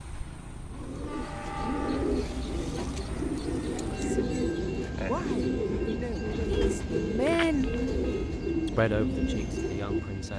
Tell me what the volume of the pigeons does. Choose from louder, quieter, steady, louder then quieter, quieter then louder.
steady.